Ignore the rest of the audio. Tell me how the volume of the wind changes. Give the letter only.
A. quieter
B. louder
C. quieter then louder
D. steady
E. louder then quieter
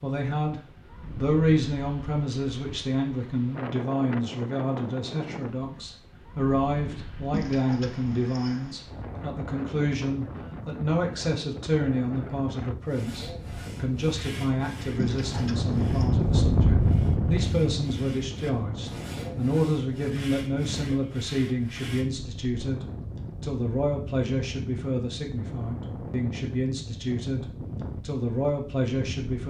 E.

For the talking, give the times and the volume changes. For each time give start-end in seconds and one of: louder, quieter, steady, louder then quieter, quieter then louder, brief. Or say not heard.
0.0-29.4 steady.